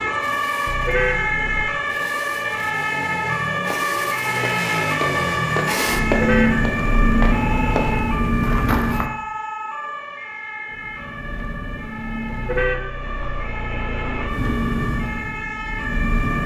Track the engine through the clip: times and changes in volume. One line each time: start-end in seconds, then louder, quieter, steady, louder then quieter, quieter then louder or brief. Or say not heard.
0.1-9.1 louder
10.7-12.7 brief
14.2-16.4 brief.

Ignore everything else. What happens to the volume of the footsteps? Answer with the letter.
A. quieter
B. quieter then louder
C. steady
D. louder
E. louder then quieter
E.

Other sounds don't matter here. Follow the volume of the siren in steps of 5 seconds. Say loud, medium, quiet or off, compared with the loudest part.
loud, loud, medium, medium.